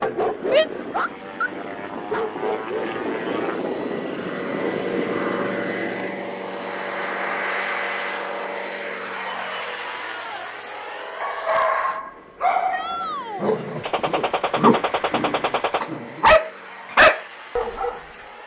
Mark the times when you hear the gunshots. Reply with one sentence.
The gunshots can be heard from 13.8 to 15.8 s.